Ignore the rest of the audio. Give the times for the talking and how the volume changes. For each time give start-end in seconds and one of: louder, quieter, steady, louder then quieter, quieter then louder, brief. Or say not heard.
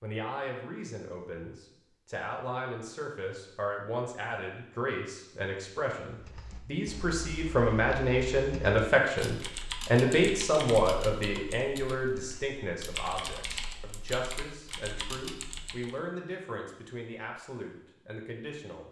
0.0-18.8 louder then quieter.